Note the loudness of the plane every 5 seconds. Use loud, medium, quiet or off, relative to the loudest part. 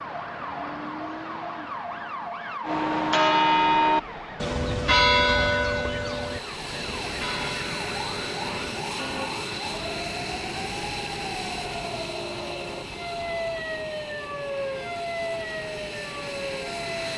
off, loud, loud, loud.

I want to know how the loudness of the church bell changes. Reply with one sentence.
The loudness of the church bell goes down.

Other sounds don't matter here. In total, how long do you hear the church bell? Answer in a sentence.
The church bell can be heard for 7 seconds in total.